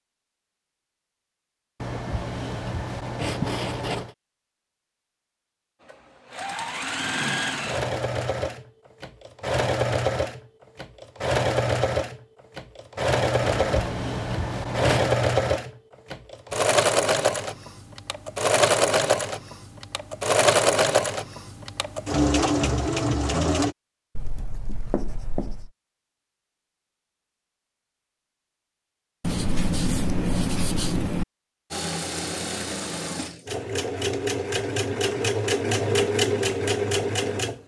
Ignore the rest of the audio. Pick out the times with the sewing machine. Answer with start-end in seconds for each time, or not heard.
5.8-23.8, 31.7-37.6.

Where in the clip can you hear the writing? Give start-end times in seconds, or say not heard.
1.8-4.2, 13.4-15.1, 24.1-25.7, 29.2-31.2.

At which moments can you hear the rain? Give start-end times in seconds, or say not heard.
not heard.